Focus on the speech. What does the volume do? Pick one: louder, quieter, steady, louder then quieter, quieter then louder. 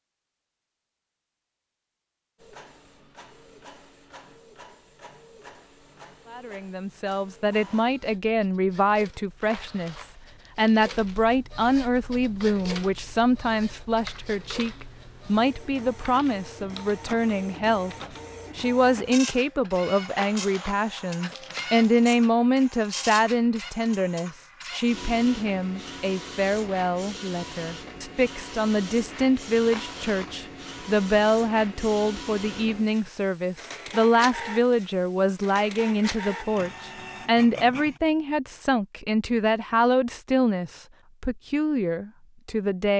steady.